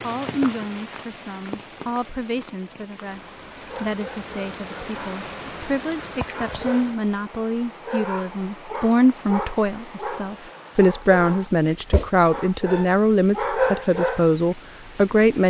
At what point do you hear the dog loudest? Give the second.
14 s.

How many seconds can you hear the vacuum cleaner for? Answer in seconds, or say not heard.
not heard.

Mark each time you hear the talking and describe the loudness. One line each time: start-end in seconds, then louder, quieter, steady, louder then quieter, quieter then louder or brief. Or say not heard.
0.0-15.4 louder.